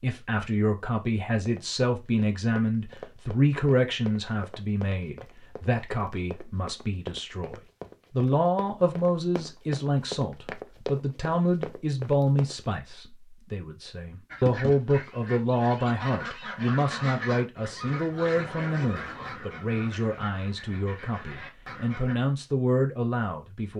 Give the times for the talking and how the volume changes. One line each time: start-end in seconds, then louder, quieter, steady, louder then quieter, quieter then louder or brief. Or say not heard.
0.0-23.7 steady.